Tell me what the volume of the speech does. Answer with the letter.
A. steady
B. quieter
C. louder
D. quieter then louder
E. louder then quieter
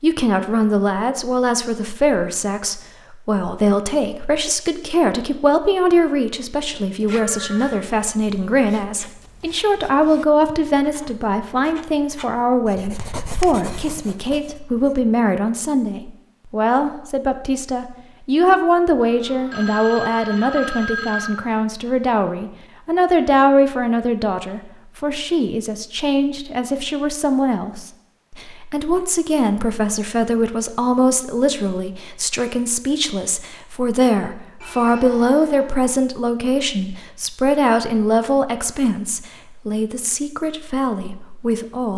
A.